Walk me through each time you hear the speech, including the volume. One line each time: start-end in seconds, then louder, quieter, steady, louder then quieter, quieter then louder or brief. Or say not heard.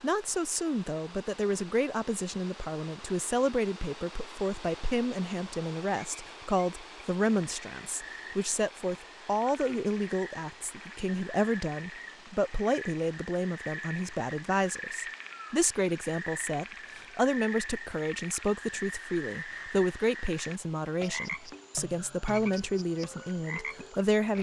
0.0-24.3 steady.